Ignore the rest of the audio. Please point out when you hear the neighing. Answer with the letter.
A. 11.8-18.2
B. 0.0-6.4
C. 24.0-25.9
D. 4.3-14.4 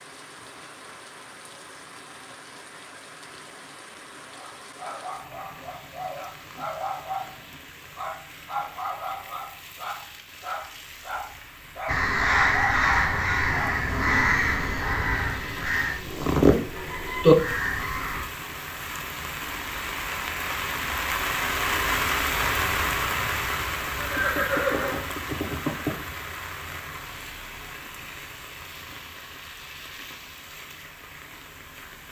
C.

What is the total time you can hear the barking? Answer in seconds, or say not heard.
10 s.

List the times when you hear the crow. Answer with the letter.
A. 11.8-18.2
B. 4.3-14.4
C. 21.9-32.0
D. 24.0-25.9
A.